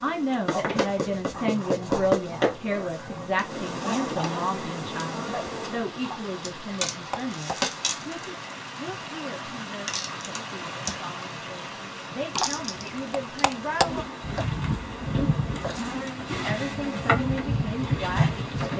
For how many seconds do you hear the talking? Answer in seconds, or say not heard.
16 s.